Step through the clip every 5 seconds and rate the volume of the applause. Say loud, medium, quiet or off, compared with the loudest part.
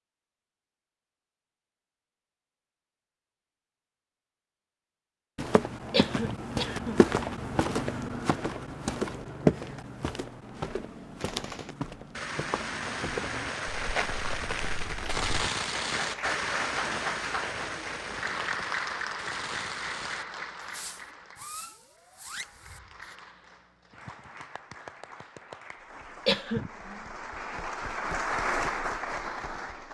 off, off, off, loud, medium, loud.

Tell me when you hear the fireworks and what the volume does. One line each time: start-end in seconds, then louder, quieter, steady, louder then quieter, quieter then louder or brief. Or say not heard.
11.2-23.1 quieter.